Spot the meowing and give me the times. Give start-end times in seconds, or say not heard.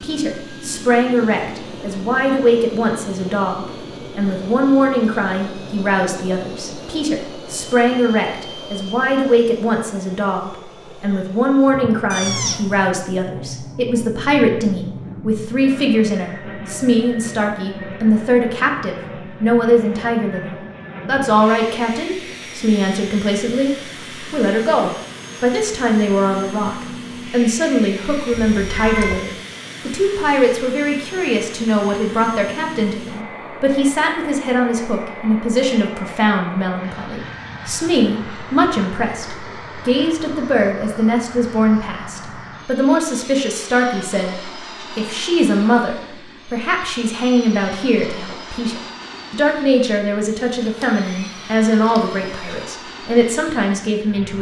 12.1-12.8, 28.3-29.2, 50.2-52.6.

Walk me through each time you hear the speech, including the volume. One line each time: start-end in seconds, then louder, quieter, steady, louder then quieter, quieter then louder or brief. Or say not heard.
0.0-54.3 steady.